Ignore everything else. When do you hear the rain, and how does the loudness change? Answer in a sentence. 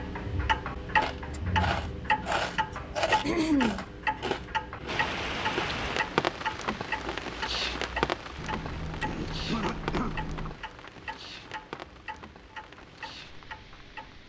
The rain can be heard from 4.8 to 14.2 s, getting quieter.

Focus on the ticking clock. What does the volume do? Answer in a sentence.
The volume of the ticking clock goes down.